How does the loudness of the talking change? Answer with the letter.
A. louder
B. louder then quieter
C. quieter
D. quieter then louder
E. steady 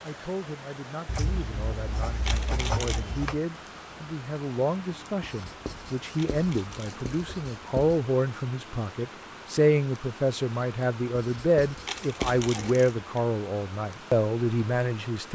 A.